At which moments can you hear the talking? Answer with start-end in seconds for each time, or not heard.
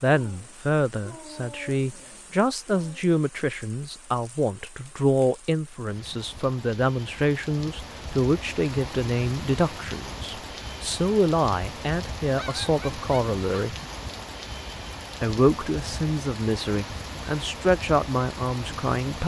0.0-13.8, 15.2-19.2.